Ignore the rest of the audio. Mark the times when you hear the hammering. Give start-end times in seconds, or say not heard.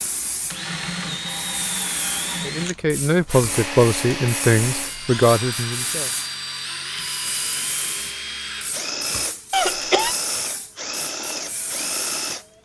not heard.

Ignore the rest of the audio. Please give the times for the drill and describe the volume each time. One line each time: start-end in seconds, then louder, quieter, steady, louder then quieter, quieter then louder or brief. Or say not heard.
0.2-12.5 steady.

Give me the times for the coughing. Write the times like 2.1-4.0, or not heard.
9.5-10.2.